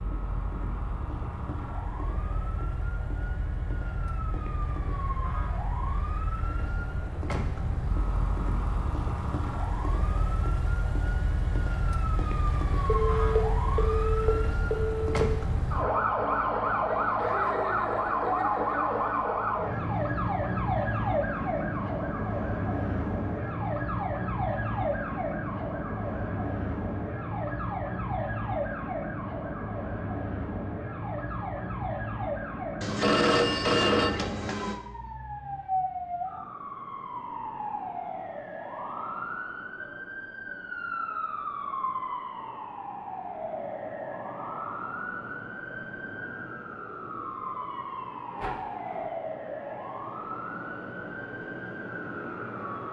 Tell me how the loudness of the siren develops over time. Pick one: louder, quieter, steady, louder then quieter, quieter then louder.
louder then quieter.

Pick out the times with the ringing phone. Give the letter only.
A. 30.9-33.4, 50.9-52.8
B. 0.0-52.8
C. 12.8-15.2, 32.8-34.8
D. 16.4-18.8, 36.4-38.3
C.